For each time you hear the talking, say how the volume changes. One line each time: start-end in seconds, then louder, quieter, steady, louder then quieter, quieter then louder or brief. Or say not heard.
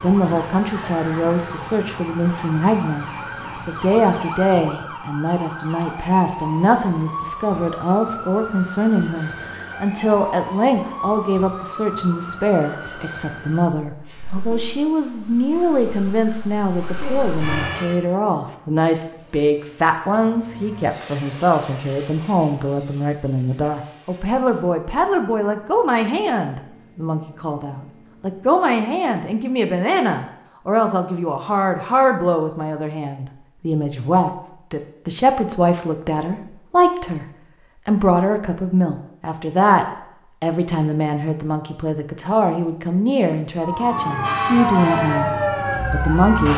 0.0-46.5 steady.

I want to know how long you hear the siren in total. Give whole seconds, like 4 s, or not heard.
21 s.